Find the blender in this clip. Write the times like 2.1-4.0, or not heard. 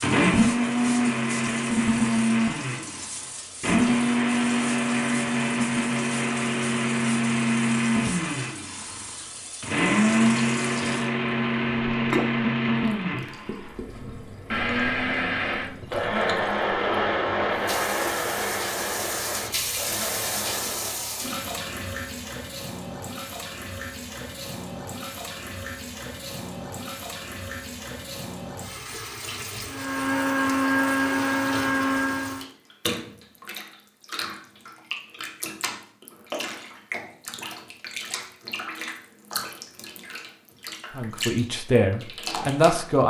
0.0-21.1, 29.6-32.4.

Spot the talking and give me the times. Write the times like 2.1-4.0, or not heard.
41.0-43.0.